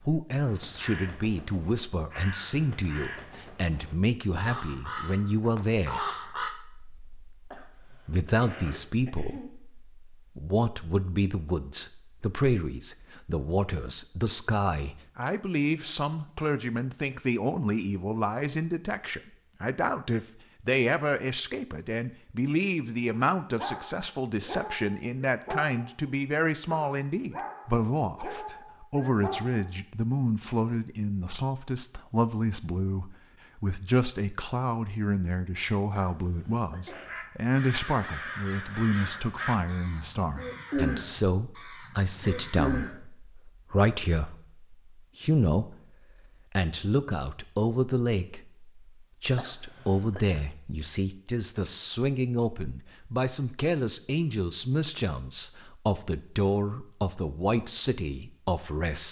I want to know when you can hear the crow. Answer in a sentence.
The crow can be heard from 0.4 to 6.5 s and from 37.0 to 43.0 s.